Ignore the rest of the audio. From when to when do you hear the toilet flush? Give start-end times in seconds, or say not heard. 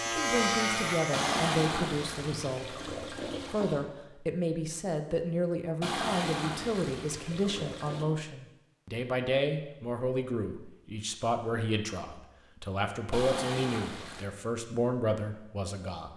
1.1-3.9, 5.8-8.1, 13.1-14.2.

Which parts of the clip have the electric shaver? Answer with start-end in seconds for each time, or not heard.
0.0-1.5.